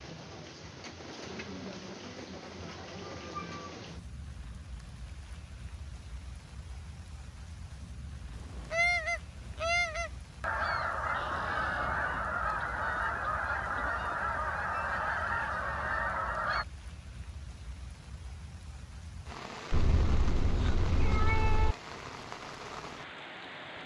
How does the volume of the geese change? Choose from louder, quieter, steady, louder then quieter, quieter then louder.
steady.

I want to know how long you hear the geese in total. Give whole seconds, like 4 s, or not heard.
8 s.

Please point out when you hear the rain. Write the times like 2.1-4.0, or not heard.
0.0-23.8.